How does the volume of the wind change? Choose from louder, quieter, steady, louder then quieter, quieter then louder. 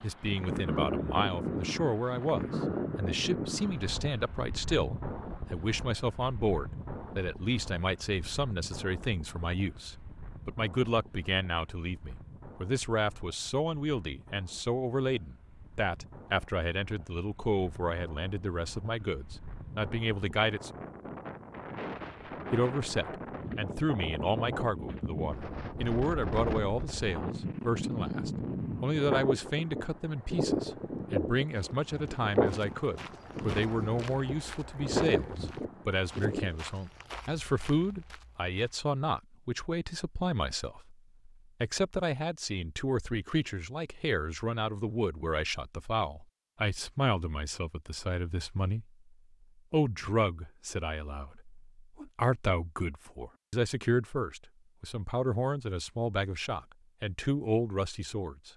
quieter then louder.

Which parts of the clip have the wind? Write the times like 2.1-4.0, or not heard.
0.0-36.5.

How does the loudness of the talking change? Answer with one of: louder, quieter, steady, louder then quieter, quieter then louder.
steady.